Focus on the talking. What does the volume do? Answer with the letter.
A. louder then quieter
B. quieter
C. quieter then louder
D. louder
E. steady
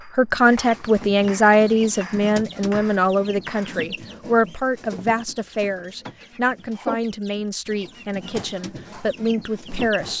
B.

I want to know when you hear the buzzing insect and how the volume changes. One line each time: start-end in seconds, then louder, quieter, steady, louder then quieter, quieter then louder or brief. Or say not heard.
not heard.